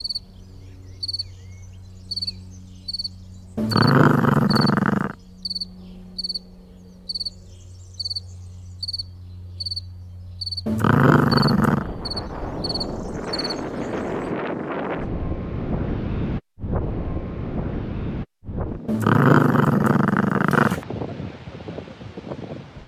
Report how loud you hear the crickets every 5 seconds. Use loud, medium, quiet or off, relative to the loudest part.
loud, loud, loud, off, off.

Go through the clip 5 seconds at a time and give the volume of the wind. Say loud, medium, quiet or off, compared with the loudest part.
off, off, loud, loud, medium.